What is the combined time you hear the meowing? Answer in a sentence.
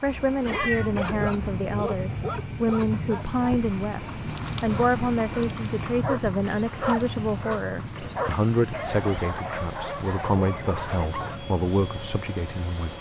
The meowing can be heard for 2 seconds in total.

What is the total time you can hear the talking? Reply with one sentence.
The talking can be heard for 13 seconds in total.